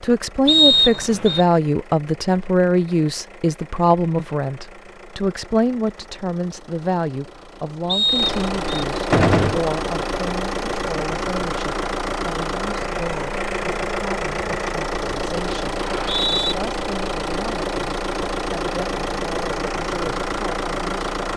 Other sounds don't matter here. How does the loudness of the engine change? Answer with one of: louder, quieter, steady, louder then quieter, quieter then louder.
louder.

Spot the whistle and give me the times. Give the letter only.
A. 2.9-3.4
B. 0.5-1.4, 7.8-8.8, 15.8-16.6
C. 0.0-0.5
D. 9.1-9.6
B.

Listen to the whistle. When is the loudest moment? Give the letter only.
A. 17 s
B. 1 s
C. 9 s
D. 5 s
B.